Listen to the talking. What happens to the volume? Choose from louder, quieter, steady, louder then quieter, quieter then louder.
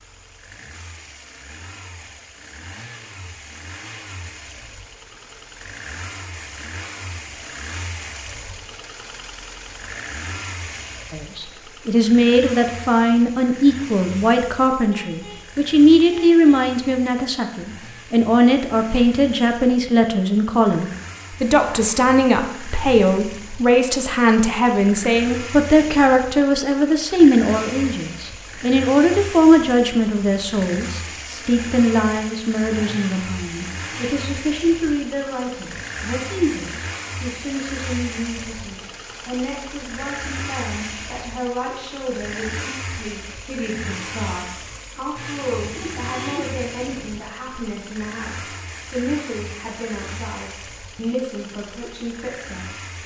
quieter.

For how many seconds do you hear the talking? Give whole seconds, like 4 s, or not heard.
42 s.